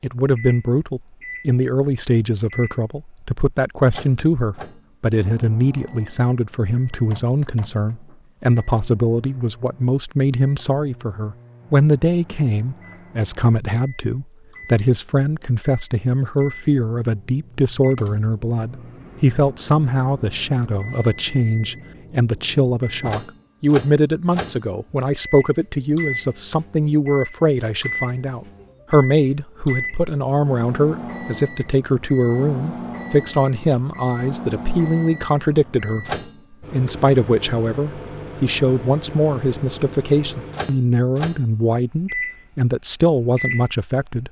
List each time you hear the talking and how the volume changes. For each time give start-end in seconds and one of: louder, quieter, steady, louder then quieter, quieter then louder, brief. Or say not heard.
0.0-36.1 steady
36.7-44.2 steady.